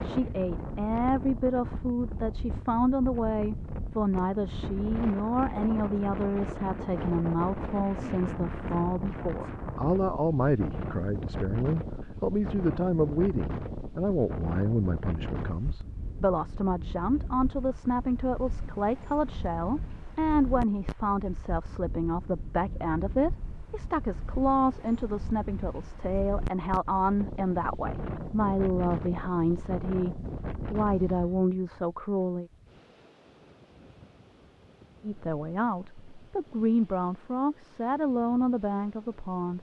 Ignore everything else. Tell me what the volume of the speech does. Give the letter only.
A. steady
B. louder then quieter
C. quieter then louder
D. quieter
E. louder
A.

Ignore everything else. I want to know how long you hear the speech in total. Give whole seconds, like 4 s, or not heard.
37 s.